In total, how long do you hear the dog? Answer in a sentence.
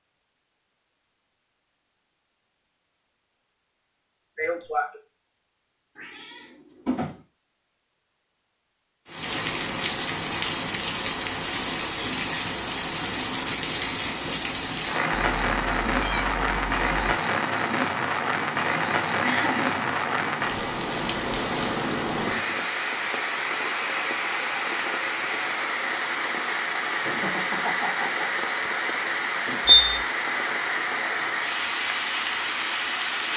The dog can't be heard in this clip.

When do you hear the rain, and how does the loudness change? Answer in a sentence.
You can hear the rain from 9.1 to 33.3 s, at a steady volume.